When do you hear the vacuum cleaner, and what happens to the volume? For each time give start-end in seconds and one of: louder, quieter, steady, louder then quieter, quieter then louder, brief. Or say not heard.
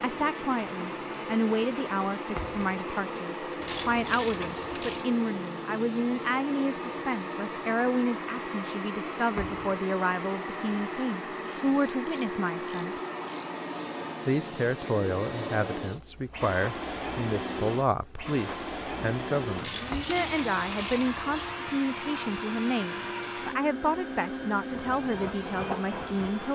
0.0-26.5 steady.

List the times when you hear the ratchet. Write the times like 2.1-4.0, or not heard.
3.6-5.0, 11.4-13.4, 19.6-21.6.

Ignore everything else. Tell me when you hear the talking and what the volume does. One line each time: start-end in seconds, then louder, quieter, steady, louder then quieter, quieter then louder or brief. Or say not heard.
0.0-13.0 steady
14.2-26.5 steady.